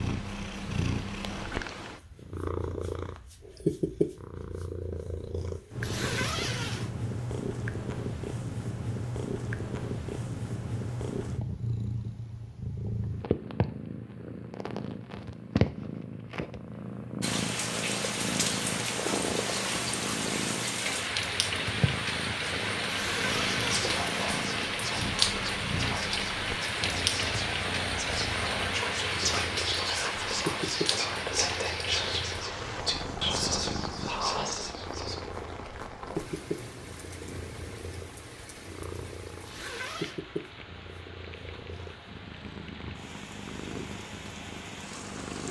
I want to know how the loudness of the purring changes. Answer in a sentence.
The loudness of the purring goes down.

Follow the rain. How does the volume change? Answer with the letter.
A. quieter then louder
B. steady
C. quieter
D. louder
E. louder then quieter
C.